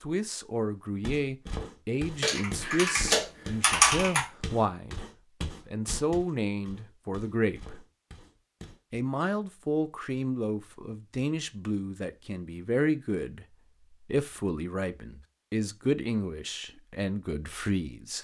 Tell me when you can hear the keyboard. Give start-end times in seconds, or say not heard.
2.2-4.2.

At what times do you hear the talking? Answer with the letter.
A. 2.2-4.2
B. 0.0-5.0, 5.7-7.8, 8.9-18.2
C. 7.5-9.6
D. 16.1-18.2
B.